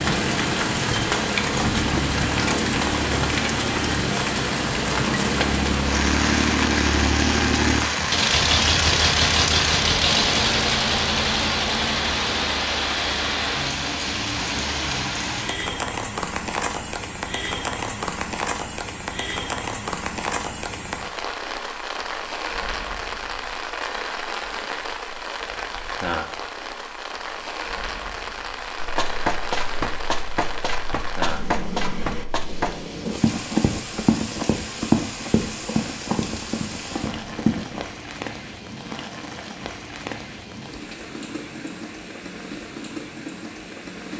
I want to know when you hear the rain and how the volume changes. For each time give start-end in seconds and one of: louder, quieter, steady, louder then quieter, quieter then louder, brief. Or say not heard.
0.0-44.1 quieter.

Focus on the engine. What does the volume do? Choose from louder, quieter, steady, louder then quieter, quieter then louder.
louder then quieter.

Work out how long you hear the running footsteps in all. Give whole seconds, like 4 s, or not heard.
9 s.